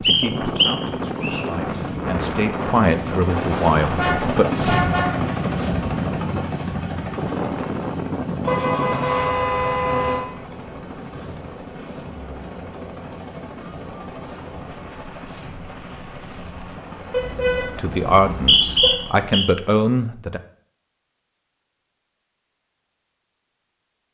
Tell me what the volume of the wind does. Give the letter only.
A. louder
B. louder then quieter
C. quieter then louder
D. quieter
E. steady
D.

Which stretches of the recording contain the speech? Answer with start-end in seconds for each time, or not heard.
0.0-4.5, 17.6-20.4.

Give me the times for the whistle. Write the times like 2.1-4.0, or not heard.
0.0-1.4, 18.2-19.4.